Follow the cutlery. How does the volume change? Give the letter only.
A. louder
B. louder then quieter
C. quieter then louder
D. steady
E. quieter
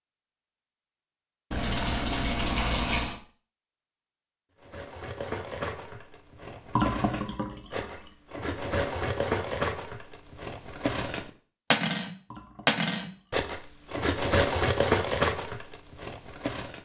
A.